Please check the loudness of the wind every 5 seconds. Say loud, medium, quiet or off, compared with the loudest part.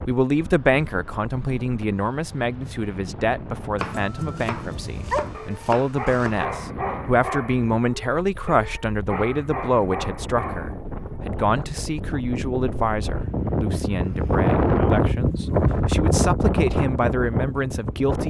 quiet, quiet, loud, loud.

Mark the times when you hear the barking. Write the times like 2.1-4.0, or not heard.
4.9-11.2.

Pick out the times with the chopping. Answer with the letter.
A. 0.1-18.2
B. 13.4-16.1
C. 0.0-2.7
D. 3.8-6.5
D.